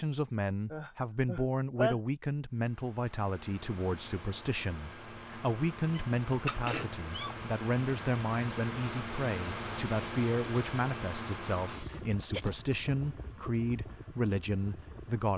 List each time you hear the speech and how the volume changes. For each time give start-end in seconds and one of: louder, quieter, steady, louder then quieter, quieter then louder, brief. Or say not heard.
0.0-15.3 steady.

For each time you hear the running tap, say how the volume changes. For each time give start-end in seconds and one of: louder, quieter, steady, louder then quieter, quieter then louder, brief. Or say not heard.
not heard.